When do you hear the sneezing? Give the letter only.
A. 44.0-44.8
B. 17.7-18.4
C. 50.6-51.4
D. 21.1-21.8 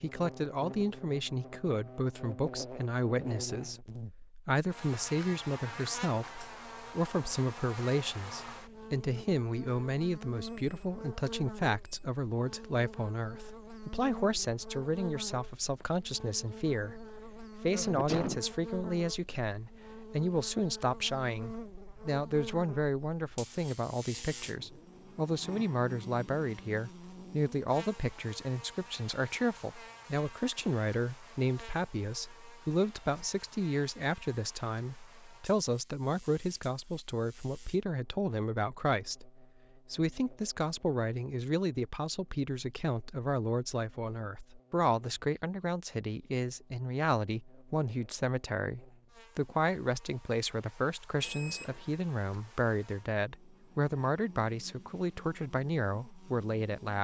B.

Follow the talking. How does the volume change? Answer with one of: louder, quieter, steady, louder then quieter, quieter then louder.
steady.